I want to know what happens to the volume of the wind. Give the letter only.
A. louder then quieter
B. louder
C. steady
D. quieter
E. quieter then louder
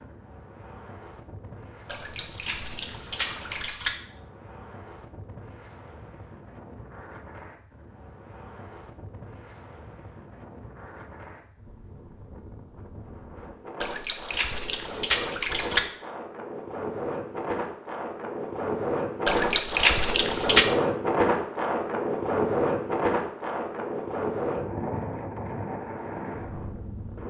B.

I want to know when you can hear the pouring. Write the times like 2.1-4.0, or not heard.
1.9-3.9, 13.8-15.8, 19.2-20.8.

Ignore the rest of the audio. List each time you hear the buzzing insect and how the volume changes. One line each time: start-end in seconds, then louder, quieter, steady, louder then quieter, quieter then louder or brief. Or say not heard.
not heard.